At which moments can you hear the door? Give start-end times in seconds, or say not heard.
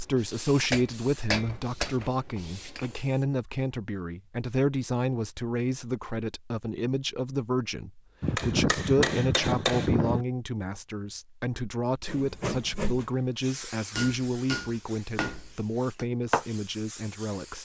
not heard.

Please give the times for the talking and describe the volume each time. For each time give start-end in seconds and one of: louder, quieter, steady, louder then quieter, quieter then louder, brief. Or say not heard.
0.0-17.6 steady.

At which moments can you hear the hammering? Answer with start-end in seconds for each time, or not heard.
0.7-2.1, 8.2-10.2, 13.9-16.1.